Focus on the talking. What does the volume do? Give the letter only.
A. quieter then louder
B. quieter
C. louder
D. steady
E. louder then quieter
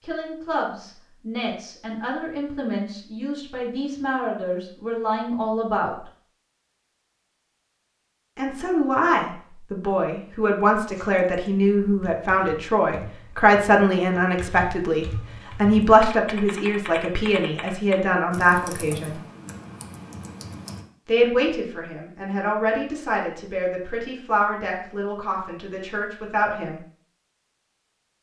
E.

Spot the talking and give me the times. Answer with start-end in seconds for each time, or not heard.
0.0-6.0, 8.3-19.2, 21.1-26.8.